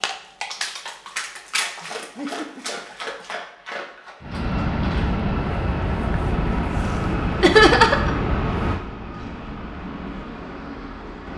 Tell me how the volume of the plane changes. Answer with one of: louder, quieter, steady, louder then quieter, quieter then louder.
quieter.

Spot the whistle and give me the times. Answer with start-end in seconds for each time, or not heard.
not heard.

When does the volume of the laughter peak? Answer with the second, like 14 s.
8 s.